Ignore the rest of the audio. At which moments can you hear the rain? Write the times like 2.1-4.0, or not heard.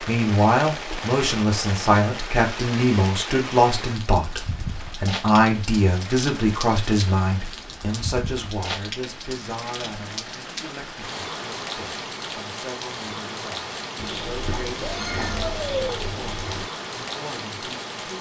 0.0-18.1.